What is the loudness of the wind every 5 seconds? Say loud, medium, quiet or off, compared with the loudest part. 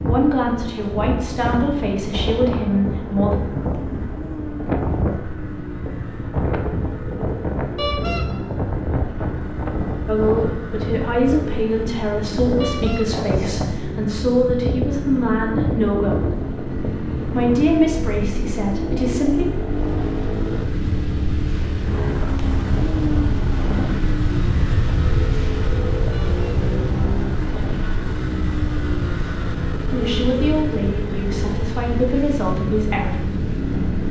loud, loud, loud, loud, loud, loud, medium.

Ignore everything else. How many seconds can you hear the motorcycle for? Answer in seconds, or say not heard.
34 s.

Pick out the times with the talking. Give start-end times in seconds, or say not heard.
0.1-3.4, 10.1-16.3, 17.2-19.4, 29.9-33.4.